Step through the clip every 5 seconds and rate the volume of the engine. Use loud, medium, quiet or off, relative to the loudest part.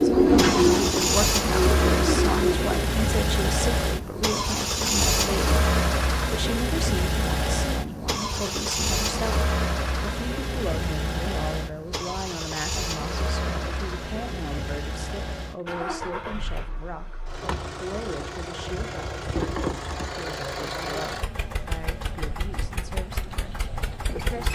loud, loud, medium, medium, medium.